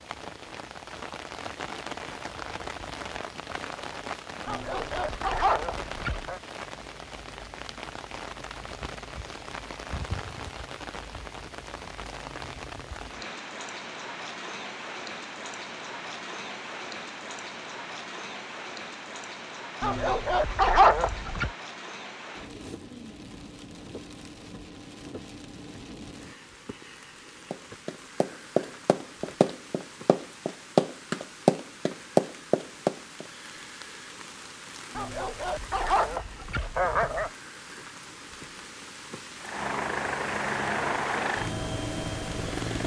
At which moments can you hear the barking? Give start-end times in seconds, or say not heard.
4.5-6.4, 19.8-21.5, 35.0-37.3.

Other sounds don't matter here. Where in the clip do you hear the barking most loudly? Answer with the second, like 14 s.
21 s.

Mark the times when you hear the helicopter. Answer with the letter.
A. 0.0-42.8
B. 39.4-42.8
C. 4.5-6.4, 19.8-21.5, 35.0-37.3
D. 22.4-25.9
B.